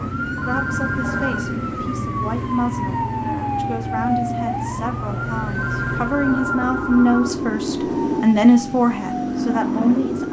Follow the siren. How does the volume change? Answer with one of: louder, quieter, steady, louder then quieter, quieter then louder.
quieter.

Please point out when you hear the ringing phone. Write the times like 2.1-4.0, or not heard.
0.3-1.5, 5.5-7.4.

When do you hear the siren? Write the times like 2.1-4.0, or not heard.
0.0-10.0.